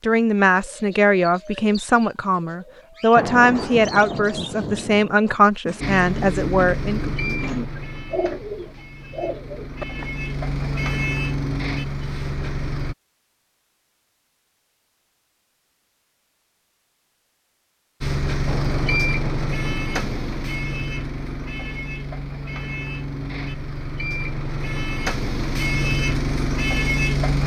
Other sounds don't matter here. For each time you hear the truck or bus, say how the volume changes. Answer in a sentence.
The truck or bus can be heard from 5.8 to 12.9 s, getting quieter then louder; and from 18.0 to 27.4 s, getting quieter then louder.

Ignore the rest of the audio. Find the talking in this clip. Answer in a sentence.
The talking can be heard from 0.0 to 7.2 s.